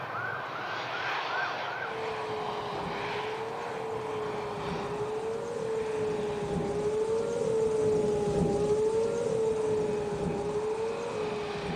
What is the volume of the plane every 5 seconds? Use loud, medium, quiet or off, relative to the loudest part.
loud, medium, medium.